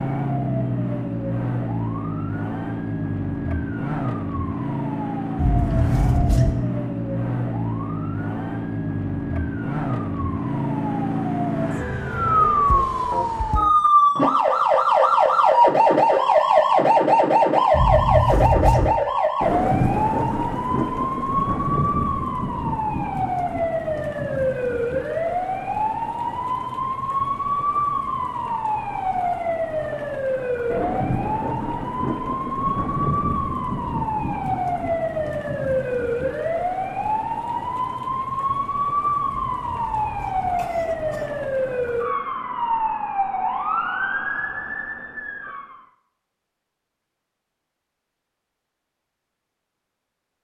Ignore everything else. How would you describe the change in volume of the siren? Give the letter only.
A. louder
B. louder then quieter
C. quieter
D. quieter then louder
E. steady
B.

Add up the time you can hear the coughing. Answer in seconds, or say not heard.
4 s.